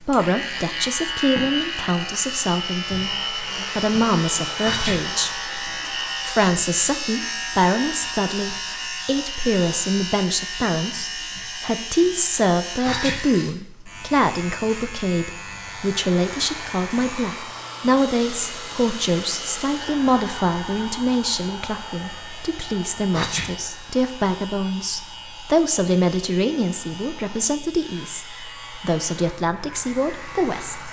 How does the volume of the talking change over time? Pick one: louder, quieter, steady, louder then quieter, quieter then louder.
steady.